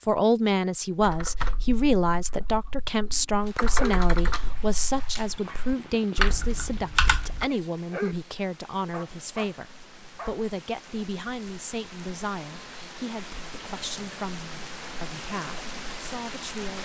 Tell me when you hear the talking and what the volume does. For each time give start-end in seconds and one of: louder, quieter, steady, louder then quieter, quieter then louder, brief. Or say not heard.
0.1-16.8 quieter.